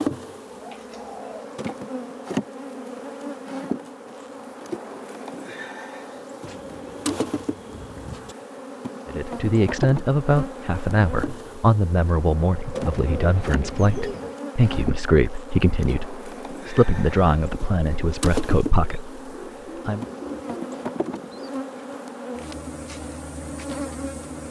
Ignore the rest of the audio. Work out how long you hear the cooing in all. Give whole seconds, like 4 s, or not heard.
8 s.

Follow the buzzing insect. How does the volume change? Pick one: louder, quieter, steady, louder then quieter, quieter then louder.
steady.